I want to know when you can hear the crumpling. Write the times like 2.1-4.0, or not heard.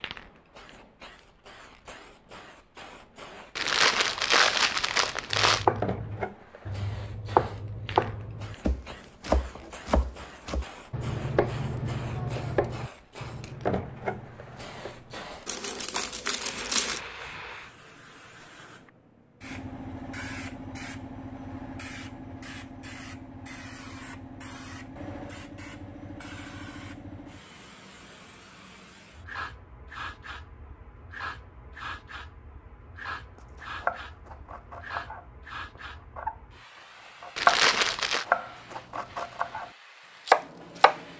3.5-5.7, 15.4-17.0, 37.4-38.2.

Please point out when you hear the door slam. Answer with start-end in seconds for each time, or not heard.
not heard.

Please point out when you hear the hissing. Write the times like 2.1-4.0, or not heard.
0.0-41.1.